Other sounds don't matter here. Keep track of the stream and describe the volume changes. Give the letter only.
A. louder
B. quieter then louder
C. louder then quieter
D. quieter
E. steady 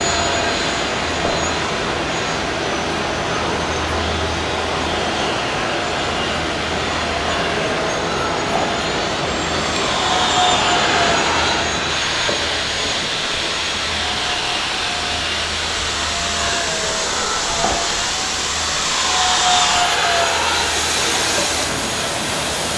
E.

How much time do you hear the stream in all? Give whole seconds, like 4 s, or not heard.
23 s.